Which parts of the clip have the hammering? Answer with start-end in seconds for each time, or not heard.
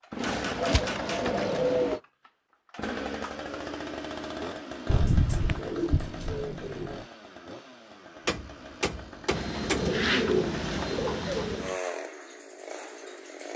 0.1-2.0, 8.2-9.9.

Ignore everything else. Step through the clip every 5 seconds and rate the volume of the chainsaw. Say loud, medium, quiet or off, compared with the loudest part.
loud, medium, loud.